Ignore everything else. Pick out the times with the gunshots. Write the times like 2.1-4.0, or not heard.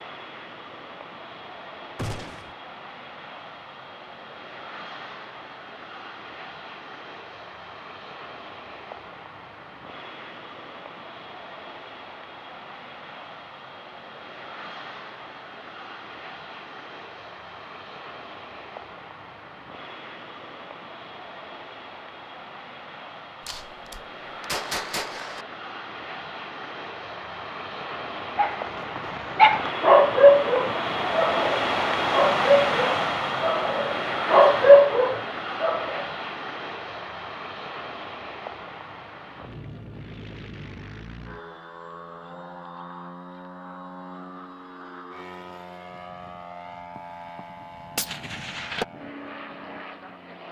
1.9-2.5, 23.4-25.4, 47.0-48.9.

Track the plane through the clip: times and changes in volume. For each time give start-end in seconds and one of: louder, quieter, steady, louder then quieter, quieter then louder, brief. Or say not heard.
0.0-50.4 louder then quieter.